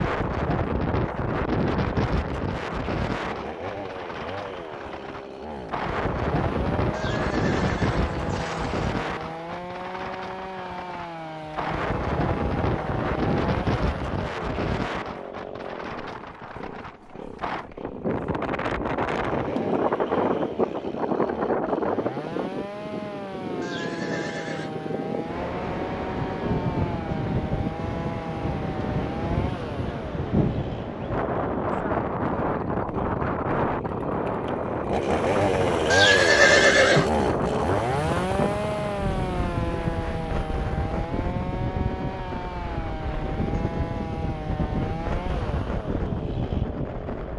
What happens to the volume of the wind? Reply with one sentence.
The loudness of the wind stays about the same.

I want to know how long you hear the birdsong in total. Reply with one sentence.
The birdsong can't be heard in this clip.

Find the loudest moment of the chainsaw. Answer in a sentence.
The loudest moment of the chainsaw is at 36 seconds.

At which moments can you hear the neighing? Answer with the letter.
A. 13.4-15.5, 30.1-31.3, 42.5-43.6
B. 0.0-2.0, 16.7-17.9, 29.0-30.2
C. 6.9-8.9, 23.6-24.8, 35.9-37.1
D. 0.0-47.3
C.